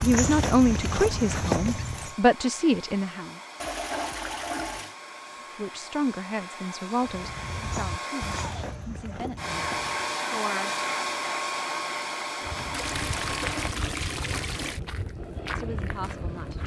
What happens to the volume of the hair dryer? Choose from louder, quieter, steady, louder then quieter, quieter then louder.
louder.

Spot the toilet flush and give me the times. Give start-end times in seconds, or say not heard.
3.6-5.0, 12.7-14.8.